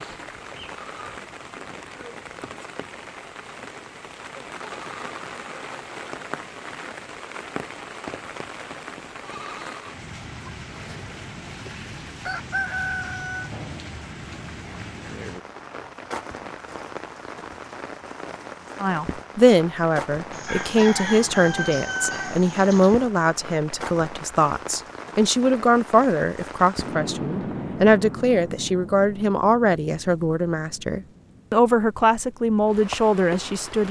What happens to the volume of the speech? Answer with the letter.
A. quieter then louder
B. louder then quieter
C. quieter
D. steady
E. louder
D.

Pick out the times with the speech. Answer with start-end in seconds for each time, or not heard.
18.8-33.8.